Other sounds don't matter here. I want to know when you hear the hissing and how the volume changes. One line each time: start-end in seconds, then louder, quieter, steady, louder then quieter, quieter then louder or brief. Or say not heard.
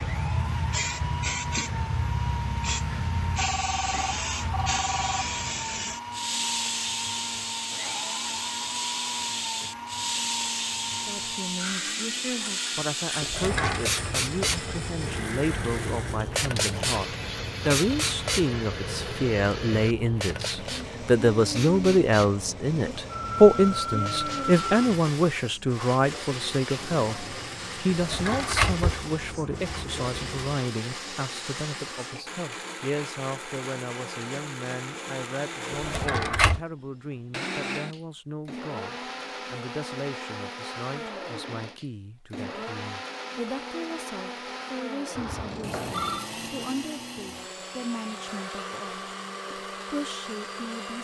0.0-31.8 quieter.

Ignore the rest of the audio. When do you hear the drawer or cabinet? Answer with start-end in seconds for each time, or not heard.
13.2-13.8, 27.9-29.1, 35.7-36.6.